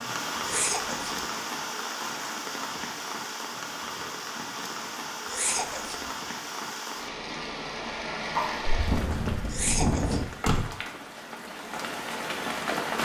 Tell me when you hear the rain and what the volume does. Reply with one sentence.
The rain can be heard from 0.0 to 12.9 s, at a steady volume.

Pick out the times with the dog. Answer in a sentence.
The dog can be heard from 8.3 to 10.2 s.